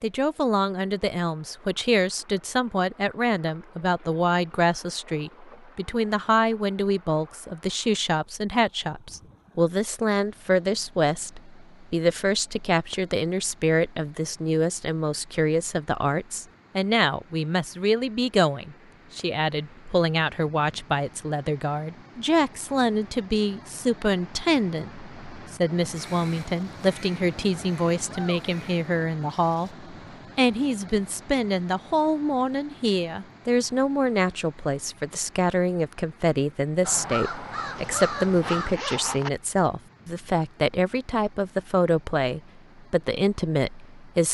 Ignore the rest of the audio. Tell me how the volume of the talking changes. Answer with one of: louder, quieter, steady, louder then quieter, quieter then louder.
steady.